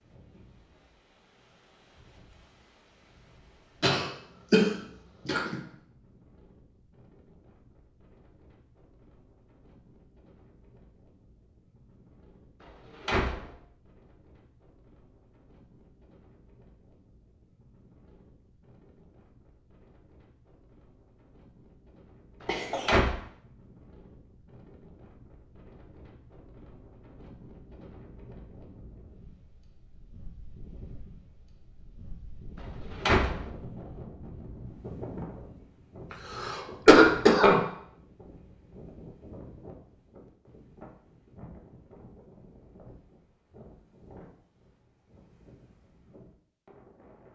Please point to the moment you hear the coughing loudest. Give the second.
37 s.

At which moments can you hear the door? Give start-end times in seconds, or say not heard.
12.6-13.5, 22.4-23.1, 32.5-33.5.